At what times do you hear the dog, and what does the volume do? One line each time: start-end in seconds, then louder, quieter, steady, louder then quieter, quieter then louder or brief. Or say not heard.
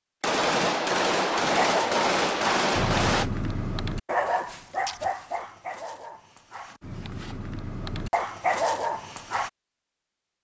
1.3-9.5 quieter then louder.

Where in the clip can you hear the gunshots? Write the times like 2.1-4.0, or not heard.
0.2-3.3.